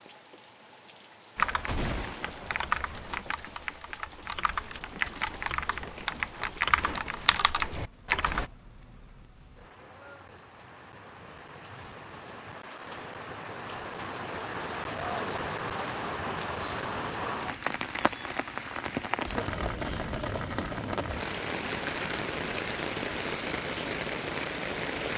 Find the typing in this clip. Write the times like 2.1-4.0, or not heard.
1.4-8.5.